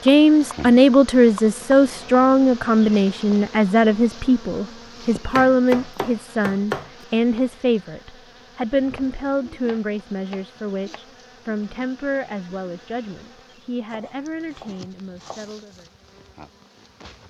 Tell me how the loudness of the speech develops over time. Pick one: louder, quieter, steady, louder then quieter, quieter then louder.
quieter.